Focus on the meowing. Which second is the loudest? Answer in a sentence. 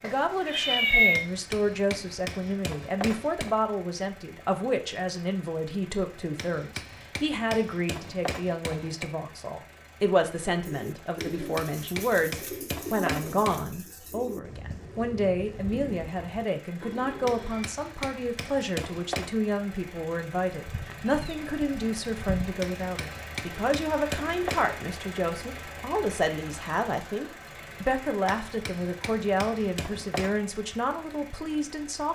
The volume of the meowing peaks at 1 second.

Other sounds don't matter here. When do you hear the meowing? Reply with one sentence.
You can hear the meowing from 0.0 to 1.2 s and from 20.6 to 22.6 s.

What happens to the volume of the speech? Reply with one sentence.
The volume of the speech stays about the same.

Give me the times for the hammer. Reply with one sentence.
The hammer can be heard from 1.1 to 3.6 s, from 6.3 to 9.1 s, from 11.2 to 13.7 s, from 17.2 to 19.4 s, from 22.6 to 24.8 s and from 28.2 to 30.4 s.